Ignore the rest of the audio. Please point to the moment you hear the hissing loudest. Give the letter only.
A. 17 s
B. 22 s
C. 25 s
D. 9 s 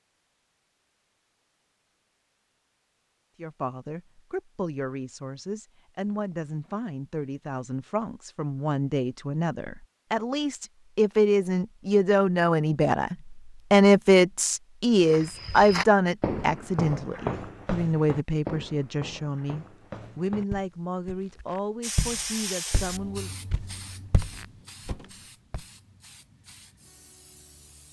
B.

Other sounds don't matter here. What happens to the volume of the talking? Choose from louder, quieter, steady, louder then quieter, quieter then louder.
louder then quieter.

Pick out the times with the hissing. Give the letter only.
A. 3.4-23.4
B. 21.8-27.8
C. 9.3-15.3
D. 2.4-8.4
B.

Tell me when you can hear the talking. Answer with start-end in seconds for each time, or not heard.
3.4-23.4.